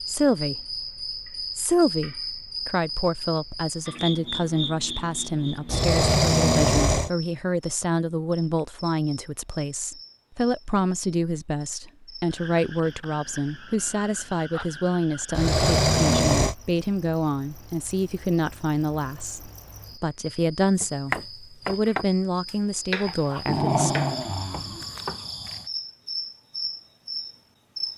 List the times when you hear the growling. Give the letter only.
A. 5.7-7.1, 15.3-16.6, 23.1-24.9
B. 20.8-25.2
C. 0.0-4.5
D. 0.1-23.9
A.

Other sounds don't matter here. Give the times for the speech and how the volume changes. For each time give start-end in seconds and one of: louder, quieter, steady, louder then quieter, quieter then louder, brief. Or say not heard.
0.1-23.9 steady.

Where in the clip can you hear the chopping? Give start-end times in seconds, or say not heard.
20.8-25.2.